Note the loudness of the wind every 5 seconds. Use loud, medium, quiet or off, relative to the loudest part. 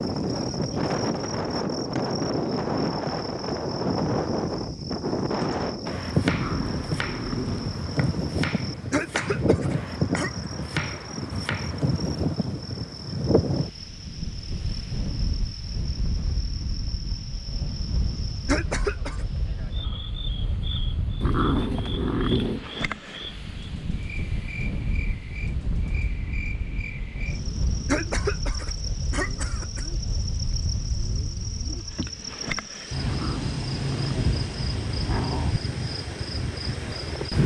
loud, loud, loud, medium, medium, medium, medium, loud.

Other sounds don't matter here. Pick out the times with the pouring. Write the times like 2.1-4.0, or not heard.
not heard.